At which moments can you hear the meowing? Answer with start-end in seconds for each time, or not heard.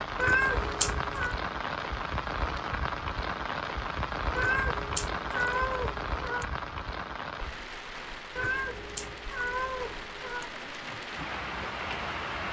0.1-1.4, 4.3-6.5, 8.3-10.5.